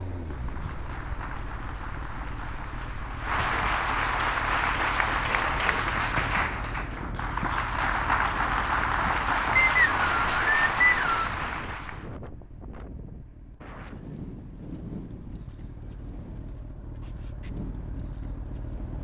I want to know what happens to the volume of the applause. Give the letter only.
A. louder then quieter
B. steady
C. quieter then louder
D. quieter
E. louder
E.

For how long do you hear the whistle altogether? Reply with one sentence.
The whistle can be heard for 2 seconds in total.